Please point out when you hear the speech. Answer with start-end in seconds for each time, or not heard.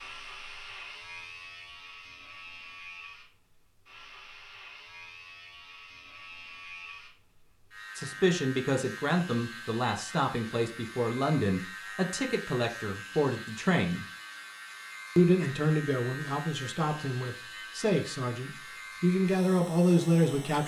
8.0-14.1, 15.2-20.6.